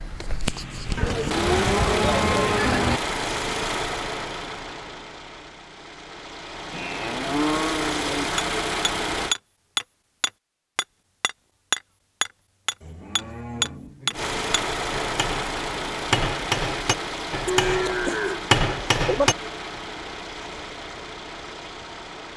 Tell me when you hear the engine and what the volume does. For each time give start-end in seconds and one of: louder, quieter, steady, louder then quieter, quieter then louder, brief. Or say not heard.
0.0-9.3 quieter then louder
14.1-22.3 quieter.